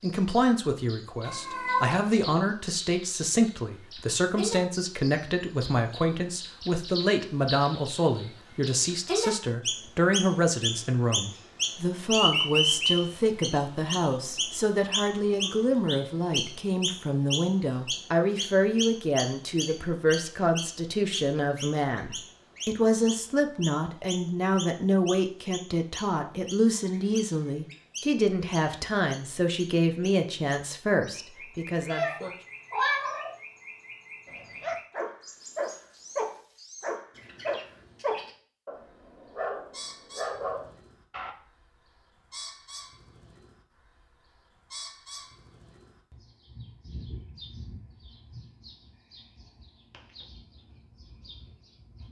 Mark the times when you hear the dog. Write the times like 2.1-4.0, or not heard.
34.2-41.4.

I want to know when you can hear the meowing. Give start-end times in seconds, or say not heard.
1.2-2.0, 31.9-33.4.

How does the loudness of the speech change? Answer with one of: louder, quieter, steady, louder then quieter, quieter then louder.
steady.